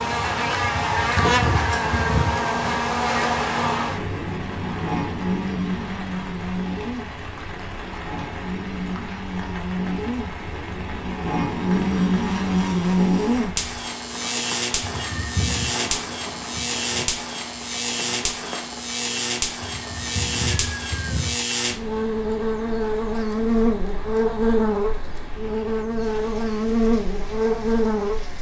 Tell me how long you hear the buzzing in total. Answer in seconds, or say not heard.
28 s.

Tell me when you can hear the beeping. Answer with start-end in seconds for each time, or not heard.
not heard.